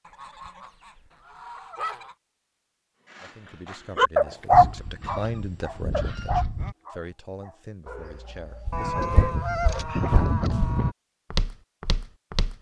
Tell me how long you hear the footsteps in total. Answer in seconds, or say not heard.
4 s.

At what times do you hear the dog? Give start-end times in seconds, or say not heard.
3.1-9.8.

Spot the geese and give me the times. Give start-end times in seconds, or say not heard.
0.1-2.1, 4.5-6.8, 8.7-10.9.